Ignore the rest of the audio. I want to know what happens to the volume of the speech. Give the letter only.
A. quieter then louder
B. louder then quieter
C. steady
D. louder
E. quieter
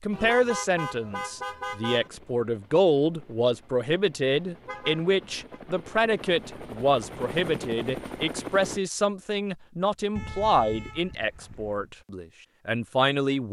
C.